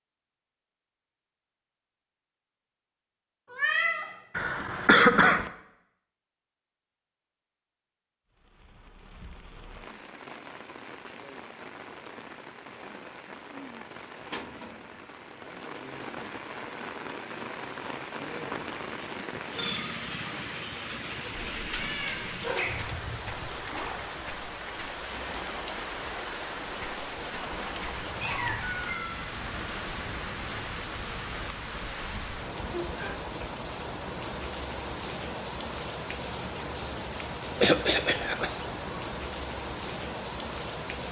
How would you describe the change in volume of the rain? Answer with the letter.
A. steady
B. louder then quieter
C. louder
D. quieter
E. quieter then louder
C.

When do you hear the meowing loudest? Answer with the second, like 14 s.
4 s.